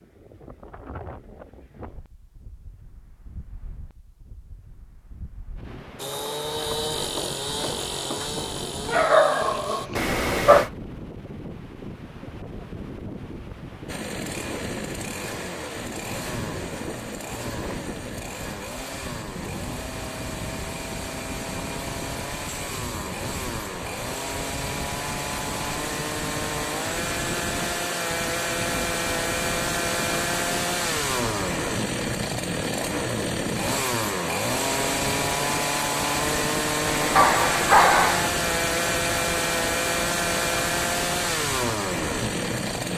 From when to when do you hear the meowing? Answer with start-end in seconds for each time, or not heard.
9.9-10.7, 36.9-38.1.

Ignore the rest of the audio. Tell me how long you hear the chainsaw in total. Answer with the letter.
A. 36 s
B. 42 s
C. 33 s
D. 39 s
C.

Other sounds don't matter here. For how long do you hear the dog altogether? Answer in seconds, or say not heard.
3 s.